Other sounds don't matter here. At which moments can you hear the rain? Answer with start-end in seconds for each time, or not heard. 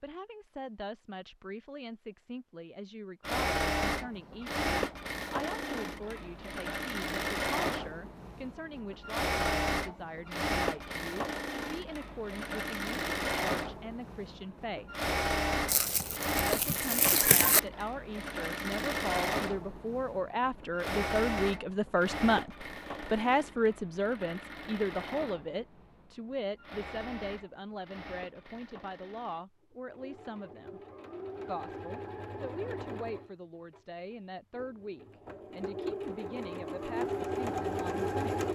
not heard.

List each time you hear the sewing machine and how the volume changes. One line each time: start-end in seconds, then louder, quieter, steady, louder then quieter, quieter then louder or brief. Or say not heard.
3.2-38.5 quieter then louder.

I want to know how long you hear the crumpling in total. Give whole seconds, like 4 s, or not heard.
2 s.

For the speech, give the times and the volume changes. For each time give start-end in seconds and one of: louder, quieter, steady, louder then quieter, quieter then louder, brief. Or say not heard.
0.0-14.9 steady
16.4-30.8 louder then quieter
31.4-38.5 steady.